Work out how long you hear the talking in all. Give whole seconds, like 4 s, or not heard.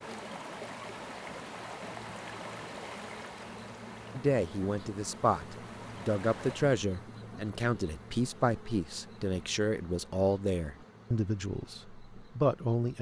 9 s.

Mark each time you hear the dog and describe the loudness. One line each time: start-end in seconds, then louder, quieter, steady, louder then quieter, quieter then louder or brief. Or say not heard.
not heard.